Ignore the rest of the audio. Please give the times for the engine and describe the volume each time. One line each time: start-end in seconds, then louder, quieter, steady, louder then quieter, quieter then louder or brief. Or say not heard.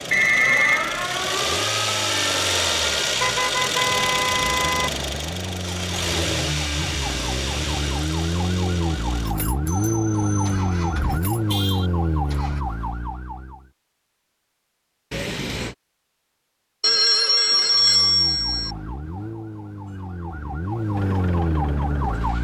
0.0-12.7 quieter
20.9-22.4 brief.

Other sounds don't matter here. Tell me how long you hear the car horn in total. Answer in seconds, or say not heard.
3 s.